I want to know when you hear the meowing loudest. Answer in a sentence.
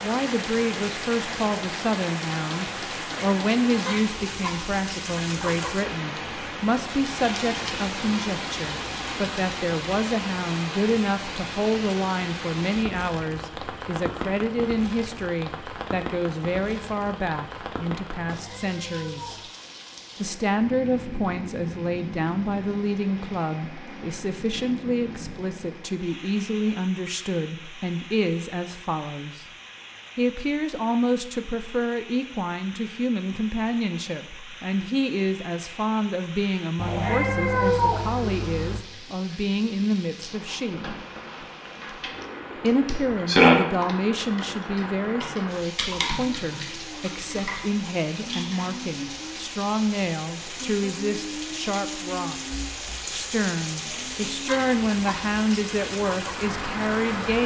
The loudest moment of the meowing is at 38 seconds.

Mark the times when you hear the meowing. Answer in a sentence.
The meowing can be heard from 18.2 to 19.5 s and from 36.8 to 38.8 s.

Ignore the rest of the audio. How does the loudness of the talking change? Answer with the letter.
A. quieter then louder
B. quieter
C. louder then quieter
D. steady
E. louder
D.